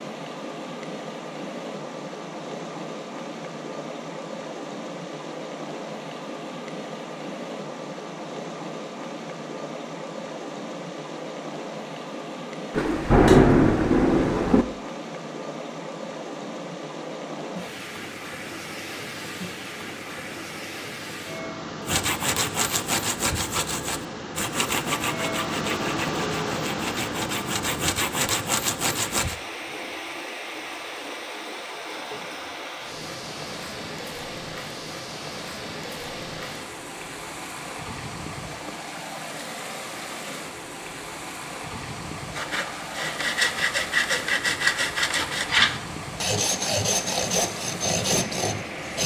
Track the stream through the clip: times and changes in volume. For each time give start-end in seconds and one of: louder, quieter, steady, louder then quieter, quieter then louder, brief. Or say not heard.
0.0-49.0 steady.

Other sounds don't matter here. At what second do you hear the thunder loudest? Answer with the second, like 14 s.
13 s.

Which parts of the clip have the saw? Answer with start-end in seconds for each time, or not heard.
21.9-29.4, 42.4-49.0.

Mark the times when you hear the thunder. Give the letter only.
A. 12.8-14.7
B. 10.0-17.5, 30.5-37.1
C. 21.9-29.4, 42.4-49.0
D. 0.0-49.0
A.